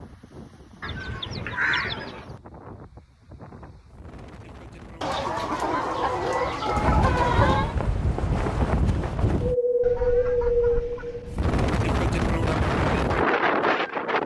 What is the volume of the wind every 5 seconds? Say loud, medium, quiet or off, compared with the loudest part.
quiet, loud, loud.